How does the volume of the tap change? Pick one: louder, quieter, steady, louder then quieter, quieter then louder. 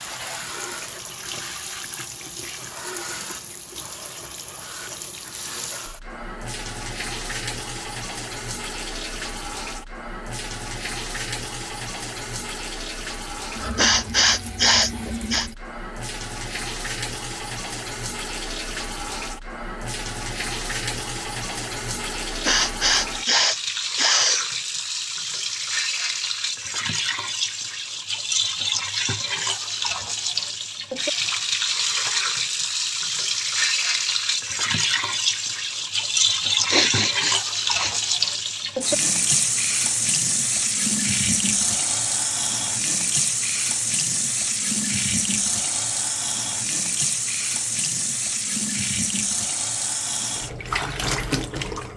louder.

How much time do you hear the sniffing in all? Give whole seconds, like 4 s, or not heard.
5 s.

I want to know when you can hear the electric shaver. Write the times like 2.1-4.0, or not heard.
not heard.